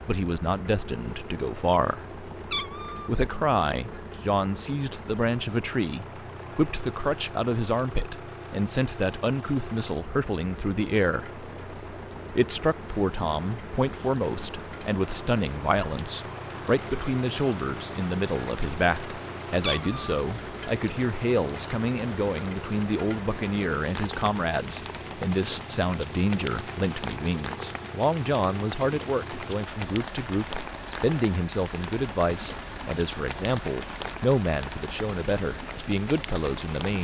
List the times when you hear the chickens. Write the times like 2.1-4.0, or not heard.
not heard.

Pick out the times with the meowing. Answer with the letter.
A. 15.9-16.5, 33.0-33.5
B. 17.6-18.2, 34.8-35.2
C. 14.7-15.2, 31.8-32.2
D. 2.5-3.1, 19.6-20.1
D.